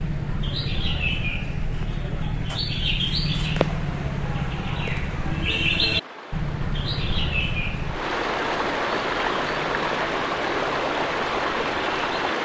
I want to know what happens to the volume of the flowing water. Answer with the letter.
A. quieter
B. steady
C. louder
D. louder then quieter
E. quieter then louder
C.